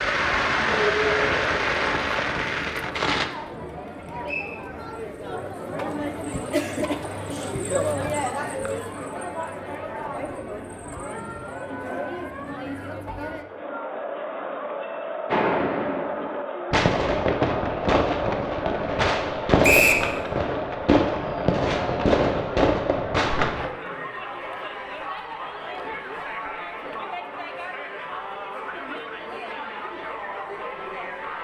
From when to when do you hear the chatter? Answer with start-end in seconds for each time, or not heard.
0.0-31.3.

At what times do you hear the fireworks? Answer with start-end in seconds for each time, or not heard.
0.0-3.3, 15.3-23.7.